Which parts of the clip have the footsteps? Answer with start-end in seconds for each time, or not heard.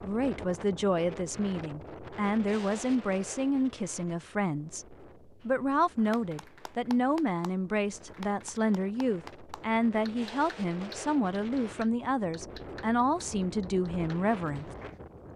not heard.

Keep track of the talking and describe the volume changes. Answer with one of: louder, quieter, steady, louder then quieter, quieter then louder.
steady.